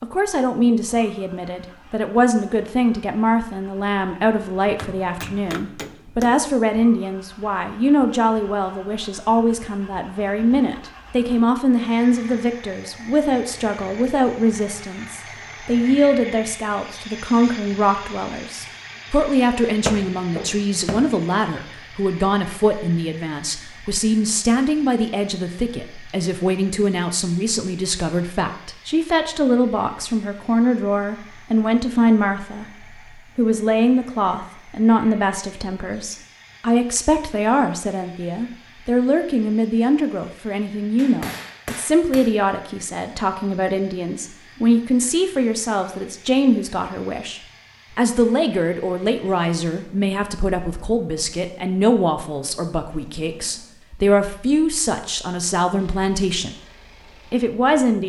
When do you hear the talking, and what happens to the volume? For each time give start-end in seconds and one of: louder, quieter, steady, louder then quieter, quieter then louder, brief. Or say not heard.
0.0-32.6 steady
33.4-56.5 steady
57.3-58.0 brief.